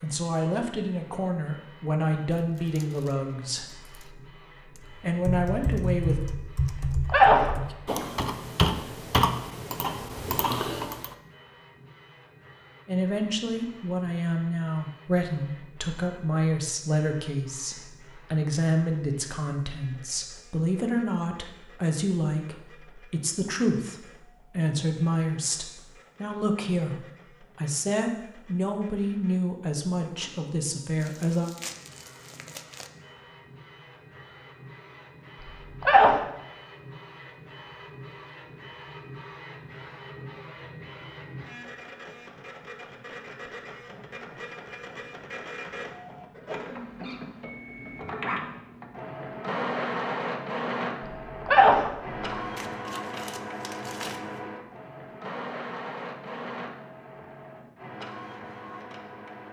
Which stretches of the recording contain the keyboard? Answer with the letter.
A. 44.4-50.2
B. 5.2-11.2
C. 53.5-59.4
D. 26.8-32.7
B.